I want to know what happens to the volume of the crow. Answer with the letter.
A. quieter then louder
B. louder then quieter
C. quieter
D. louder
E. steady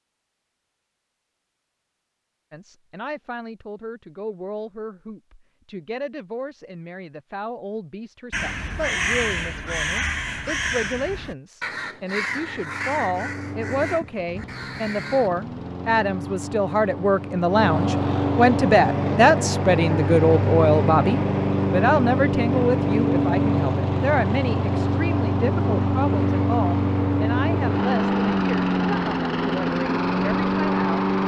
C.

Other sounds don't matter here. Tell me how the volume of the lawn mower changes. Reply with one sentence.
The volume of the lawn mower goes up.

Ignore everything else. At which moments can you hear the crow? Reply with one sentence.
The crow can be heard from 8.3 to 15.3 s.